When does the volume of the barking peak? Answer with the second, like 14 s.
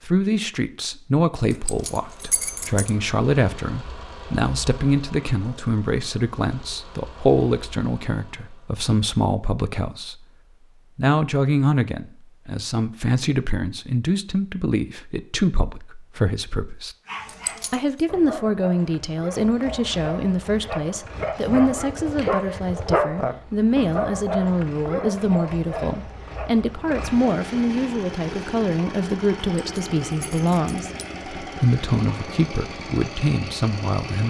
23 s.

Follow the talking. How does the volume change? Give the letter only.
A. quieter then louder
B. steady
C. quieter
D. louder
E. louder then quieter
B.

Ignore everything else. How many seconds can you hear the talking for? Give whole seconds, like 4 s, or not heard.
33 s.